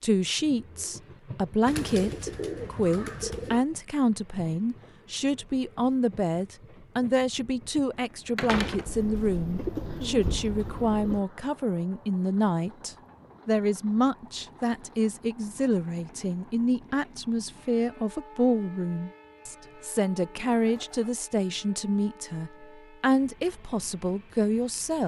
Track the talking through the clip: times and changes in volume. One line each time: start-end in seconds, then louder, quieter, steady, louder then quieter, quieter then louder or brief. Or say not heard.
0.0-25.0 steady.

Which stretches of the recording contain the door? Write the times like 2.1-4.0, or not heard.
8.3-8.9.